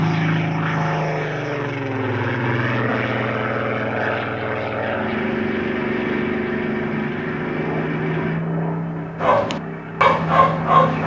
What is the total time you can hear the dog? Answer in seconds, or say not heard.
2 s.